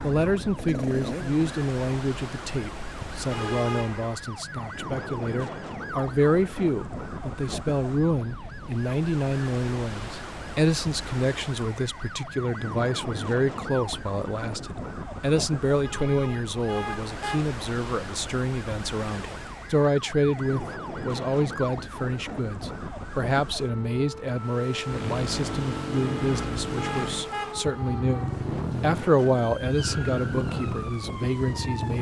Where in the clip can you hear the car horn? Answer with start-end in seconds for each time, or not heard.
3.3-4.2, 15.8-17.4, 25.9-27.6.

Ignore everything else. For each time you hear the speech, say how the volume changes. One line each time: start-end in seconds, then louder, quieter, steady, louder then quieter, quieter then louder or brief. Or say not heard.
0.0-31.9 steady.